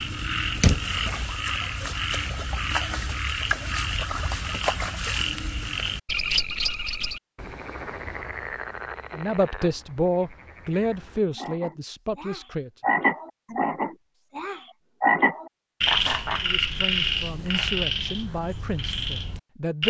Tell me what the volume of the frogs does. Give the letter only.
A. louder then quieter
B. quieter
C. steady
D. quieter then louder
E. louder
D.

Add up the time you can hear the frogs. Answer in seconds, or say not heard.
20 s.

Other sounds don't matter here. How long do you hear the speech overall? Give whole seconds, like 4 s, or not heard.
7 s.